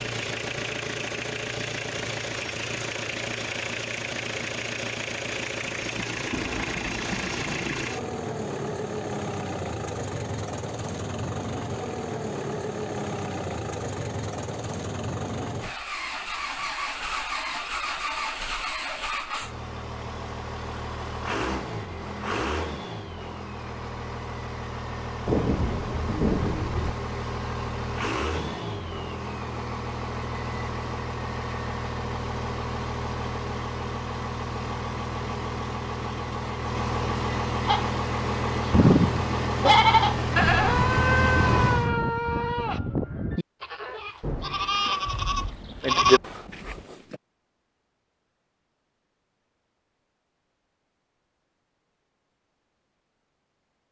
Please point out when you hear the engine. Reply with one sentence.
The engine can be heard from 0.0 to 41.9 s.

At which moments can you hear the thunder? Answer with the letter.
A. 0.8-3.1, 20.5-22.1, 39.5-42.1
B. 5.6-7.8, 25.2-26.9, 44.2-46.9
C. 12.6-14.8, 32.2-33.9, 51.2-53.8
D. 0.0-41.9
B.